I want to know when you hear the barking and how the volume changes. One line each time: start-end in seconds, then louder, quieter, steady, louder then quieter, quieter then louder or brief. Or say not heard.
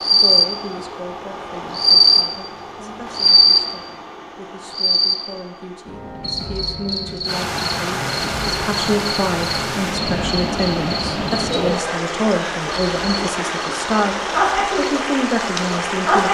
not heard.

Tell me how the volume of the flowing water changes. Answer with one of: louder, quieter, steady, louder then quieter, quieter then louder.
steady.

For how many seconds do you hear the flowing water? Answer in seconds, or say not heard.
9 s.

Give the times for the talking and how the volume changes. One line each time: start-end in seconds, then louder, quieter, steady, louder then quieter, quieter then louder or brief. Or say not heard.
0.1-16.2 louder.